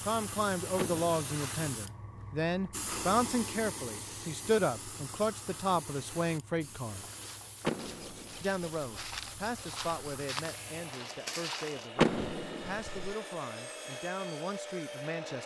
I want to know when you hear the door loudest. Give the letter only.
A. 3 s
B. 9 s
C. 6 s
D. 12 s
D.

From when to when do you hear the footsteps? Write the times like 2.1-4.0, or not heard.
7.0-13.2.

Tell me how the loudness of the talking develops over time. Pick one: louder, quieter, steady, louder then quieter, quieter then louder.
quieter.